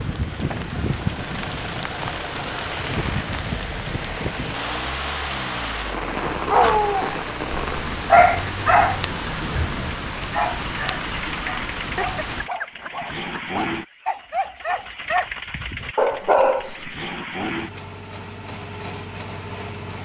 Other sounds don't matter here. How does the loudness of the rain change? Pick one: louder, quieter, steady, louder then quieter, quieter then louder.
steady.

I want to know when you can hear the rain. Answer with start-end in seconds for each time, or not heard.
0.0-12.5.